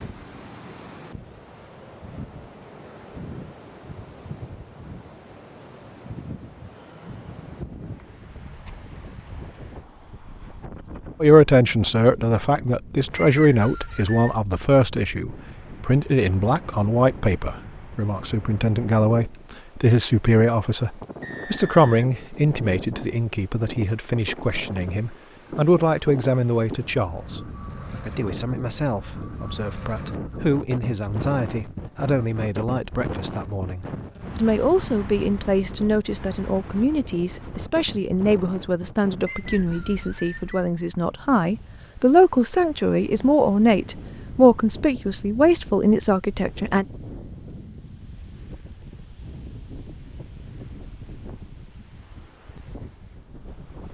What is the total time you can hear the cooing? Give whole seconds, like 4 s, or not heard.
not heard.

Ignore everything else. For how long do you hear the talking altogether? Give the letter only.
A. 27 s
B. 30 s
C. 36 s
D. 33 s
C.